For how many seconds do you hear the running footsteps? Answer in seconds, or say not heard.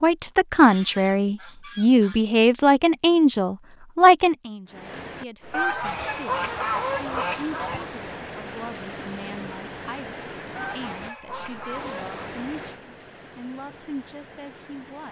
not heard.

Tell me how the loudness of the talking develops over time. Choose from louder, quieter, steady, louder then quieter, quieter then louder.
quieter.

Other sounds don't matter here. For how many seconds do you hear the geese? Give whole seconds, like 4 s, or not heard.
6 s.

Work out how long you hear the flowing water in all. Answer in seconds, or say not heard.
10 s.